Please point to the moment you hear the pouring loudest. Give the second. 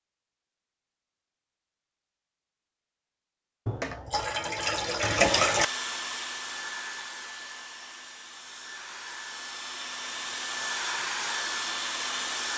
5 s.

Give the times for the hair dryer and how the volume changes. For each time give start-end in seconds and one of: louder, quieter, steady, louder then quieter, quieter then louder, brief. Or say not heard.
5.1-12.5 quieter then louder.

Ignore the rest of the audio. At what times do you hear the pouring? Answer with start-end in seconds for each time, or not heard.
3.6-5.7.